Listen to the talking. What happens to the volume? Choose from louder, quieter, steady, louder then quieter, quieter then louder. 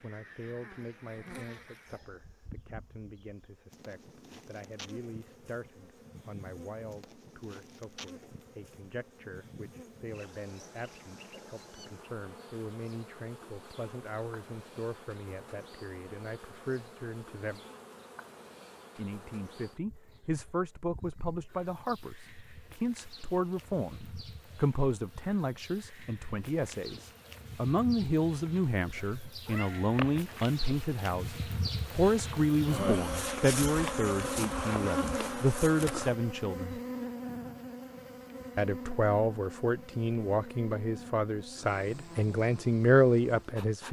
louder.